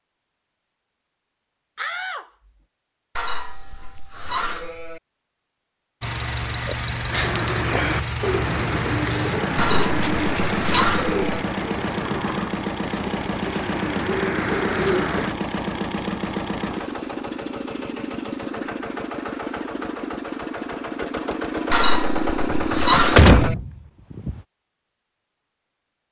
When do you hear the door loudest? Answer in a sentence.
The volume of the door peaks at 23 seconds.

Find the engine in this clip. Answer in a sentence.
The engine can be heard from 6.0 to 23.5 s.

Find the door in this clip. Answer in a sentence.
You can hear the door from 1.8 to 2.2 s, from 11.9 to 12.6 s and from 22.5 to 24.4 s.